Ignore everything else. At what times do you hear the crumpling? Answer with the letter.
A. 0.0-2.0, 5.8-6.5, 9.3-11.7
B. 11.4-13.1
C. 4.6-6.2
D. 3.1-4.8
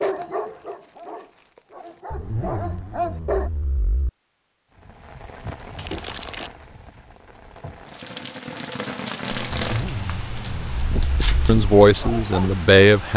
A.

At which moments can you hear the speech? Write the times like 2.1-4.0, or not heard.
11.4-13.1.